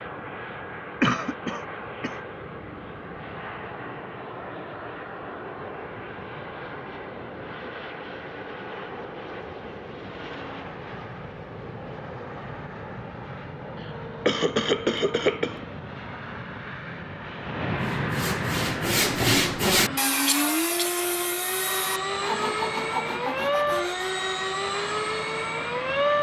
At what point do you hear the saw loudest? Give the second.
19 s.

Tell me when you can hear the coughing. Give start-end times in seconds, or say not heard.
1.0-2.1, 13.8-15.7, 20.2-21.1.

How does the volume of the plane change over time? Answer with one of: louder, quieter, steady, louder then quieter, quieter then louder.
louder.